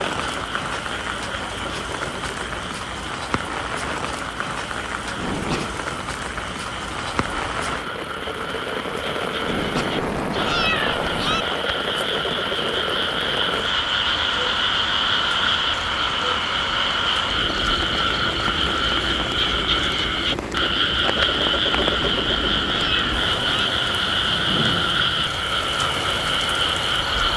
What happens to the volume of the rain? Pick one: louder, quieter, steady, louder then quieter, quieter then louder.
steady.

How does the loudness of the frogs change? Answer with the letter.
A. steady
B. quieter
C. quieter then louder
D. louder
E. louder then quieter
D.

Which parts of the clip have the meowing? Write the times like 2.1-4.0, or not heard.
5.2-5.8, 9.4-11.4, 21.6-23.7.